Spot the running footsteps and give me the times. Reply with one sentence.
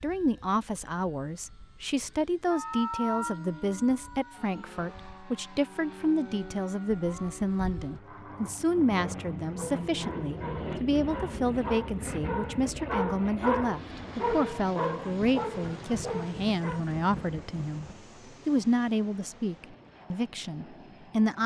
The running footsteps can't be heard in this clip.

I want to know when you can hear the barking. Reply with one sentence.
The barking can be heard from 8.0 to 16.8 s.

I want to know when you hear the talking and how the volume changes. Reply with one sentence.
The talking can be heard from 0.0 to 17.9 s, at a steady volume; and briefly from 18.4 to 21.4 s.